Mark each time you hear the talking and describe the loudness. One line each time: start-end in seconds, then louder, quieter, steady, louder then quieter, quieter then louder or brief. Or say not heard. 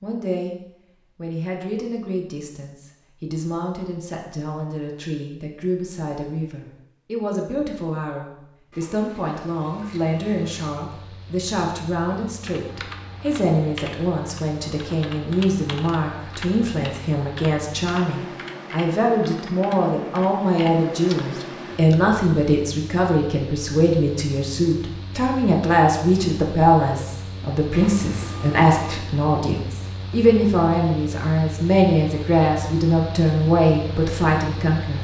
0.0-0.6 brief
1.1-34.9 louder.